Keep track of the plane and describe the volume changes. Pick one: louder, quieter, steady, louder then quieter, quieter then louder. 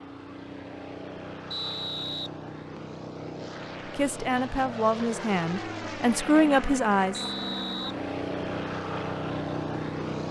louder.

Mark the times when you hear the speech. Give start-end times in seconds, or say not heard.
3.9-7.2.